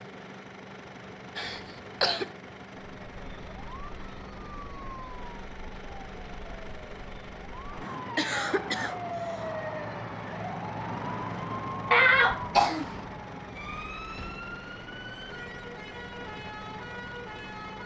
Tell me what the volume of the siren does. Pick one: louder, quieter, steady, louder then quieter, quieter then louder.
louder then quieter.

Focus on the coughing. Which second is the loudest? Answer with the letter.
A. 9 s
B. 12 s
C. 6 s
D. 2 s
B.